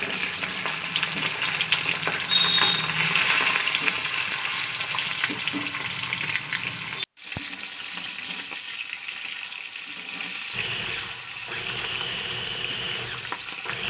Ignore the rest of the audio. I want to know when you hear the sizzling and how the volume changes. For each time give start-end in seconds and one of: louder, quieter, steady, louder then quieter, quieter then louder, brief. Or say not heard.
0.0-13.8 quieter.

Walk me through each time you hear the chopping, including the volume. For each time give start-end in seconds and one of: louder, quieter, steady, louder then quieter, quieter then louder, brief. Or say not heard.
not heard.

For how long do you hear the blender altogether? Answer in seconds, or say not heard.
3 s.